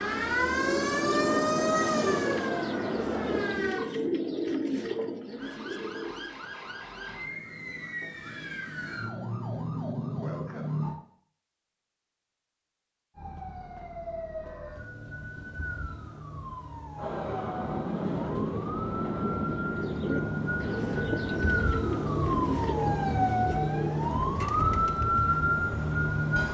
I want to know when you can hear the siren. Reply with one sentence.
The siren can be heard from 0.0 to 3.9 s, from 5.3 to 10.9 s and from 13.2 to 26.4 s.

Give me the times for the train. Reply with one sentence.
You can hear the train from 0.0 to 3.6 s and from 16.9 to 26.4 s.